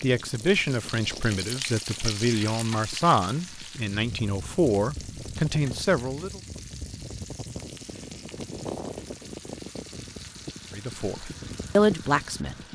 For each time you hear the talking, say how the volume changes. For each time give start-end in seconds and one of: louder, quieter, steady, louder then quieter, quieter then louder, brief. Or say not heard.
0.0-6.4 steady
10.7-12.6 brief.